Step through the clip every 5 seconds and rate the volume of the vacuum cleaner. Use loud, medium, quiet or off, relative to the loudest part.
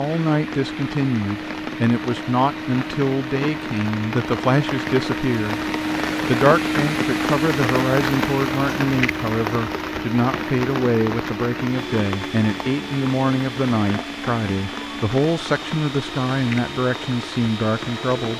medium, loud, medium, medium.